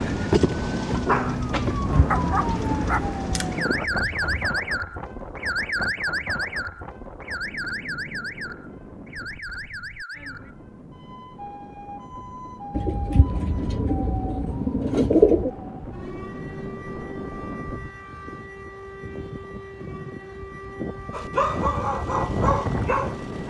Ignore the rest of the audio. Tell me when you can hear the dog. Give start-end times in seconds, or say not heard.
0.0-4.5, 21.1-23.4.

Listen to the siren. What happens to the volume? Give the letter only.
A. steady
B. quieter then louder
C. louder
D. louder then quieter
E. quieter
E.